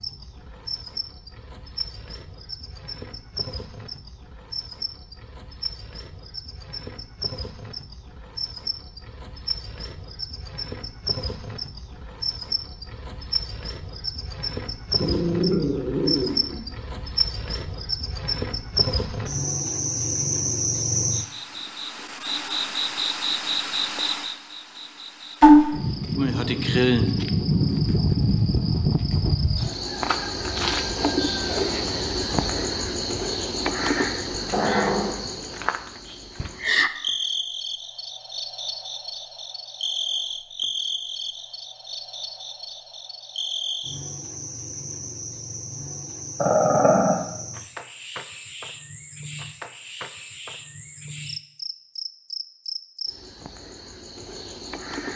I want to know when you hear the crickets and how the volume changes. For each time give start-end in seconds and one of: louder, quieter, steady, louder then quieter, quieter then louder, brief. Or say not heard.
0.0-55.1 louder then quieter.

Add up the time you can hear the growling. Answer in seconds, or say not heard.
3 s.